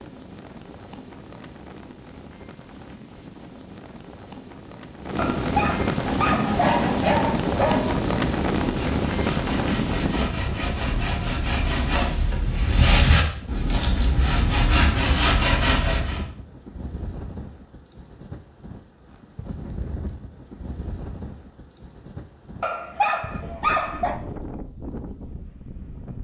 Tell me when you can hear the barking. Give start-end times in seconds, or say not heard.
5.2-8.0, 22.6-24.1.